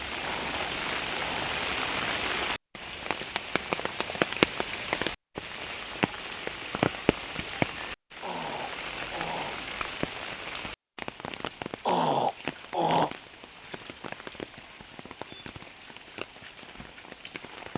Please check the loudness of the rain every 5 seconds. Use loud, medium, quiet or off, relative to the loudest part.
loud, loud, medium, quiet.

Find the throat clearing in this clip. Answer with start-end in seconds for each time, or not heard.
0.2-1.6, 8.2-9.6, 11.8-13.1.